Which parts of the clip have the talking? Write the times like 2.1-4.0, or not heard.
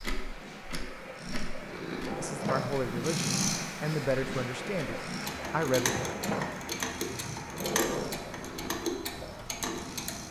2.2-6.0.